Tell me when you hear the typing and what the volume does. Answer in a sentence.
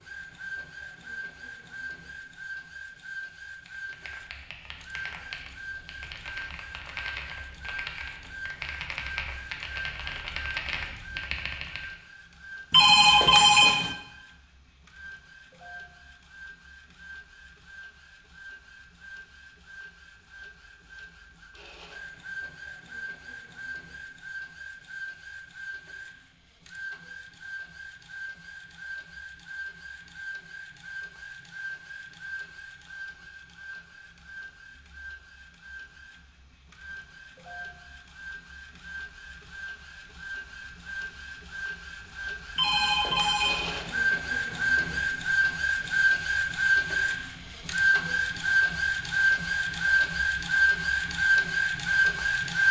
The typing can be heard from 3.6 to 11.8 s, getting louder.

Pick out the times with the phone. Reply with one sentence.
The phone can be heard from 12.7 to 13.9 s and from 42.5 to 43.8 s.